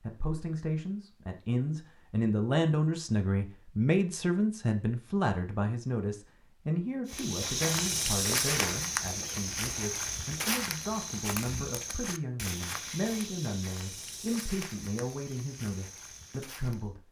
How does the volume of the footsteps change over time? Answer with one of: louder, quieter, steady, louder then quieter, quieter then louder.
quieter.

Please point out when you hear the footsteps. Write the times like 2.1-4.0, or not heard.
7.0-16.9.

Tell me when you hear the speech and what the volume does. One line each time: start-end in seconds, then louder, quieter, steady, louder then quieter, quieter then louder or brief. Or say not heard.
0.0-17.0 quieter.